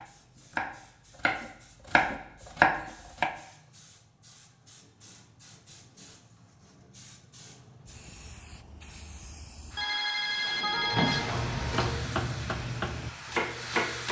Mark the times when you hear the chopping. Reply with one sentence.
The chopping can be heard from 0.0 to 3.4 s and from 11.2 to 14.0 s.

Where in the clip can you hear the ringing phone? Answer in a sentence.
You can hear the ringing phone from 9.8 to 12.0 s.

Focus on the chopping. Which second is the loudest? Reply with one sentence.
The loudest moment of the chopping is at 3 seconds.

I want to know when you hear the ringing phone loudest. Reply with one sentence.
The volume of the ringing phone peaks at 11 seconds.